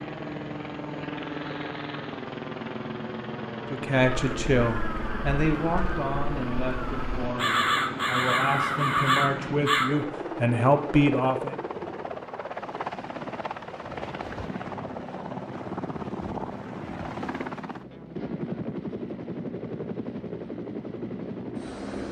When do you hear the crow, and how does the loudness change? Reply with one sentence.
You can hear the crow from 4.1 to 10.1 s, getting louder.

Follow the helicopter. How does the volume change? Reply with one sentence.
The loudness of the helicopter stays about the same.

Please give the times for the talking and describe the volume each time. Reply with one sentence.
You can hear the talking from 3.7 to 11.6 s, getting quieter then louder.